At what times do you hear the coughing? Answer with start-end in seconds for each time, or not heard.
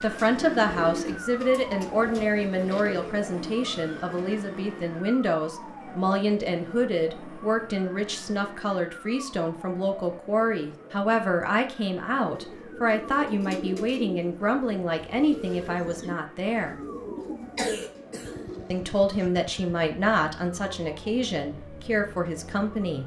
17.6-18.7.